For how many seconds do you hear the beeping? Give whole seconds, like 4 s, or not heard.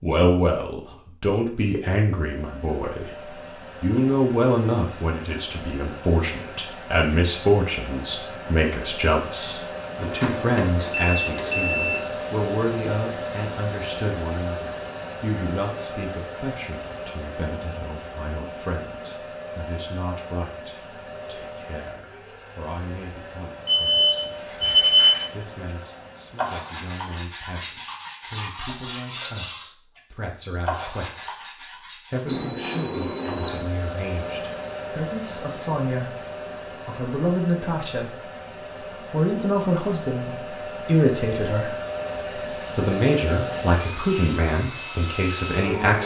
5 s.